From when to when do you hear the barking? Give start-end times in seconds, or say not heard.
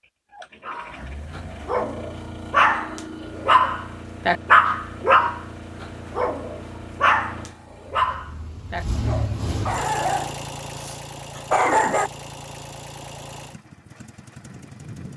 0.7-12.1.